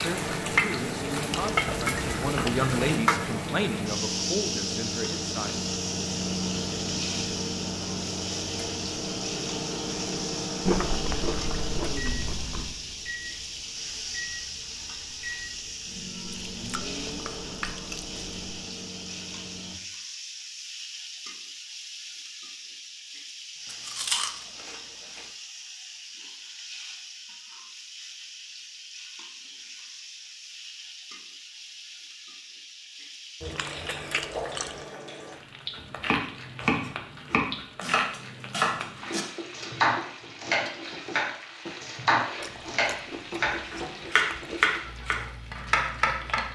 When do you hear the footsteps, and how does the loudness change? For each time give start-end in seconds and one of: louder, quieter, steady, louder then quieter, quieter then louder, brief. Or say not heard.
not heard.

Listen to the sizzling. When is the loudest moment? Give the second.
1 s.